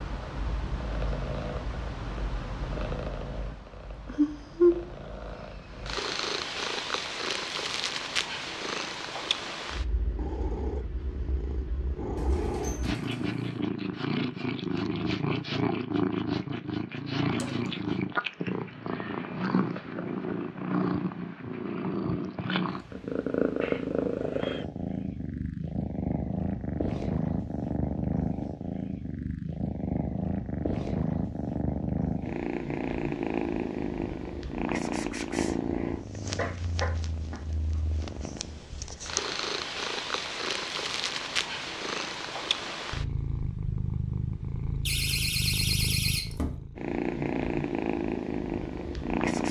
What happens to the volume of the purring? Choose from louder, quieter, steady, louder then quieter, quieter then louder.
steady.